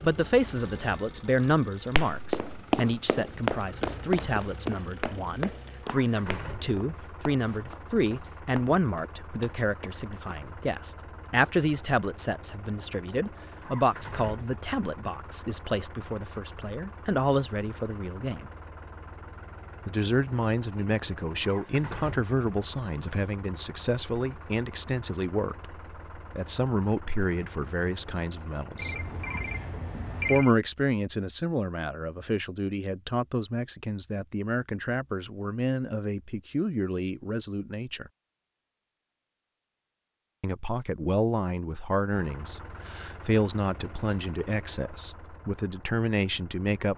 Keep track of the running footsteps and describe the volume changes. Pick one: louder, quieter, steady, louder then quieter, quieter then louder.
quieter.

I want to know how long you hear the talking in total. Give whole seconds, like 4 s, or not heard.
42 s.